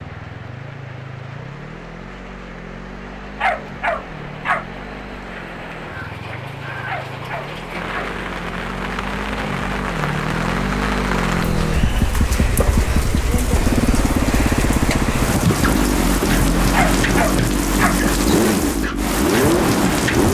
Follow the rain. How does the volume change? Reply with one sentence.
The volume of the rain goes up.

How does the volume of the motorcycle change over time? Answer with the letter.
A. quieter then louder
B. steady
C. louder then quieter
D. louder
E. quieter
D.